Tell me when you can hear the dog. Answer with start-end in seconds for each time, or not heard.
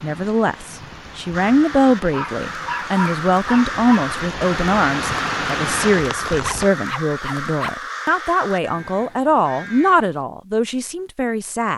2.1-4.0, 6.3-7.8.